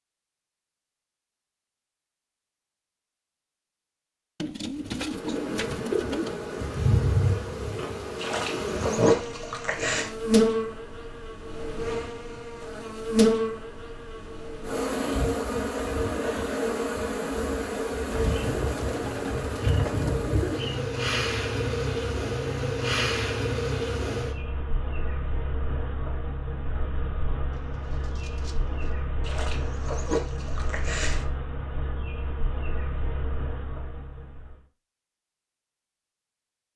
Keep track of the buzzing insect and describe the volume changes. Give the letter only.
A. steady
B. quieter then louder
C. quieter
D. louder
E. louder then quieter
C.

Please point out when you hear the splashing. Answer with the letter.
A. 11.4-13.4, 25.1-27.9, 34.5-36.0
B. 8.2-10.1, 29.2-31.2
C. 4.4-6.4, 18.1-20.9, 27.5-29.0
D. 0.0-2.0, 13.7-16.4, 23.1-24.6
B.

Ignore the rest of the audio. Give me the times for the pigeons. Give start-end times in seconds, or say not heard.
4.4-6.4, 18.1-20.9, 27.5-29.0.